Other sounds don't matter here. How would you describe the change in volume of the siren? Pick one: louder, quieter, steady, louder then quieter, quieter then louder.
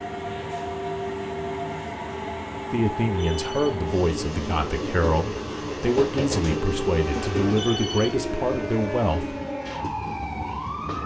steady.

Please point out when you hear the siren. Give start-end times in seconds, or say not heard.
6.5-11.0.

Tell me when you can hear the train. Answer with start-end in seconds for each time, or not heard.
0.0-11.0.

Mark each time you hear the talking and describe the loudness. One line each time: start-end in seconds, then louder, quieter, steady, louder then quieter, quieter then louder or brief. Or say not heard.
2.7-9.3 steady.